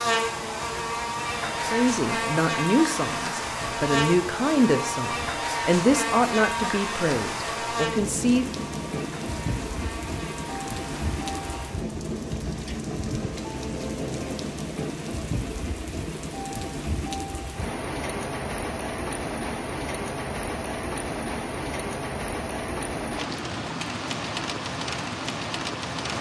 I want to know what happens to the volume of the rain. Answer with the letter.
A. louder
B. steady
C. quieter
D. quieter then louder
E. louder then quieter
A.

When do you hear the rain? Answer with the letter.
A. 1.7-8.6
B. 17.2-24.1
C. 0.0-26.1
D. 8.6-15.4
C.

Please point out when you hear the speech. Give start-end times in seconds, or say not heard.
1.7-8.6.